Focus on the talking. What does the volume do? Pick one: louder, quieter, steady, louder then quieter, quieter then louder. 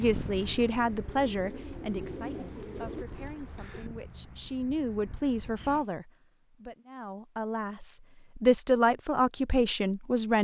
quieter then louder.